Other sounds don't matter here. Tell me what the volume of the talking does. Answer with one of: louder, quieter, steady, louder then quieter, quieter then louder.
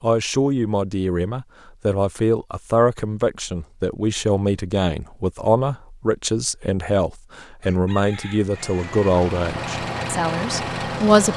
steady.